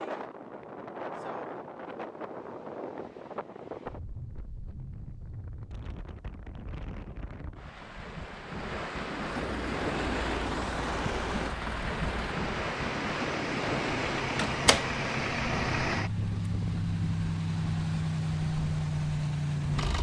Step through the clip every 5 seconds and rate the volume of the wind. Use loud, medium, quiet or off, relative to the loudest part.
medium, medium, loud, medium.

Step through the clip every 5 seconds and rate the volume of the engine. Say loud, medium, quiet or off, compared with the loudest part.
off, off, medium, loud.